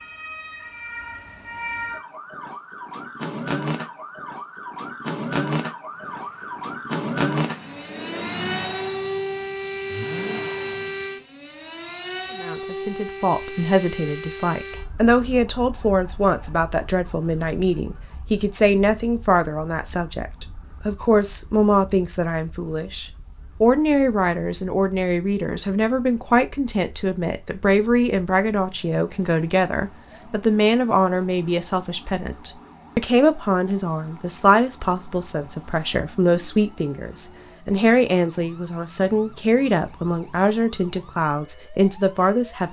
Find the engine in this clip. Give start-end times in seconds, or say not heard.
5.9-11.2.